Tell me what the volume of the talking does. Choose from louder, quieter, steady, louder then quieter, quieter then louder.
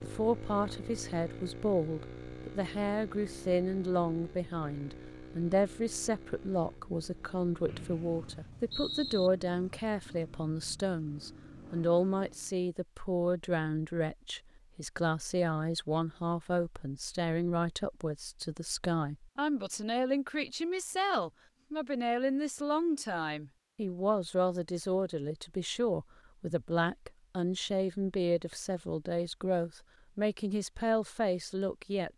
steady.